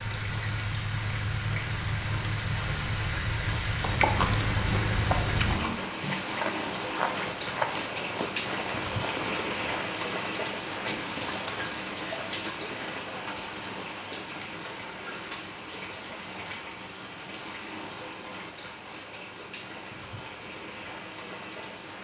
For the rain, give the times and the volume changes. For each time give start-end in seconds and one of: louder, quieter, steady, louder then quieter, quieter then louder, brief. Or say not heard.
0.0-21.9 quieter.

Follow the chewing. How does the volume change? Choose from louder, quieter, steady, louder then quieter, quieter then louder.
quieter.